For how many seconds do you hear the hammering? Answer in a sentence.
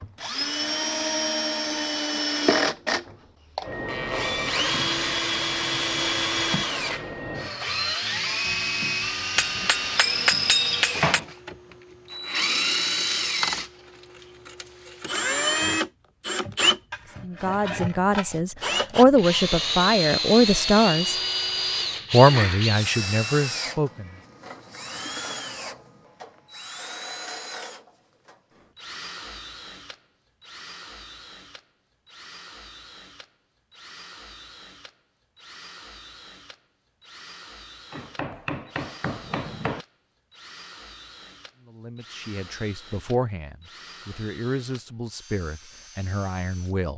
The hammering can be heard for 4 seconds in total.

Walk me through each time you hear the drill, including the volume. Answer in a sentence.
The drill can be heard from 0.0 to 46.9 s, getting quieter.